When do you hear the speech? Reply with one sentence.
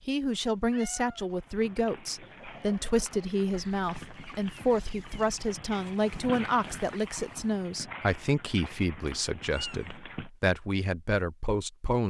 You can hear the speech from 0.1 to 12.0 s.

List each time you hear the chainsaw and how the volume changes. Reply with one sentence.
The chainsaw can't be heard in this clip.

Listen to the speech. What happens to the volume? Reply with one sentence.
The loudness of the speech stays about the same.